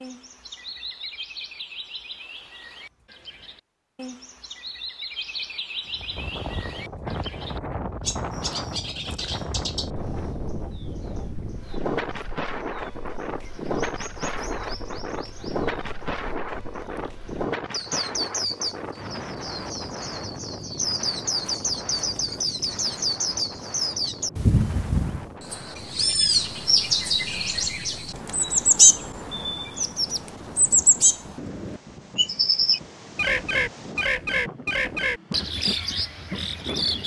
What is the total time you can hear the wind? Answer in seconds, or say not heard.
31 s.